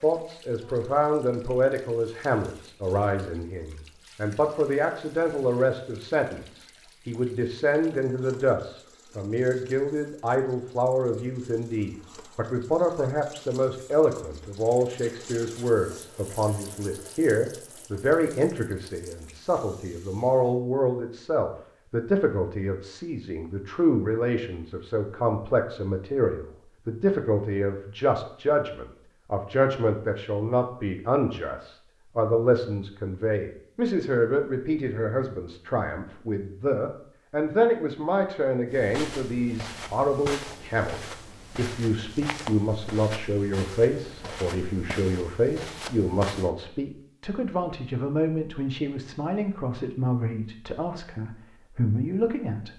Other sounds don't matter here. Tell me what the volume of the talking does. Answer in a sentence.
The loudness of the talking stays about the same.